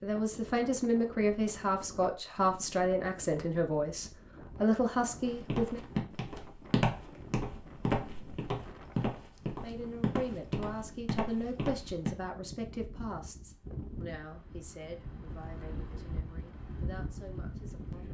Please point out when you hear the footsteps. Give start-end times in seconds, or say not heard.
5.2-12.1.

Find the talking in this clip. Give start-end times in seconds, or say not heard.
0.0-5.8, 9.6-18.1.